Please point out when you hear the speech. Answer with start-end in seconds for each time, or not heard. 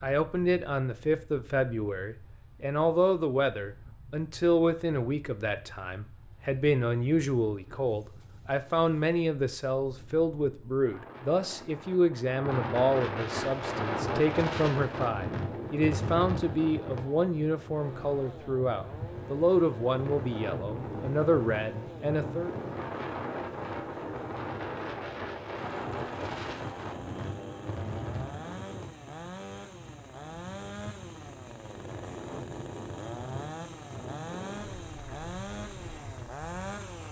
0.0-22.5.